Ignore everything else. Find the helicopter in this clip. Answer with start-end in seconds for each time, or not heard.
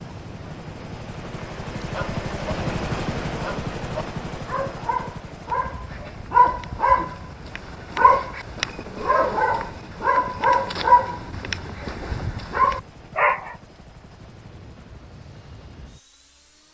0.0-16.6.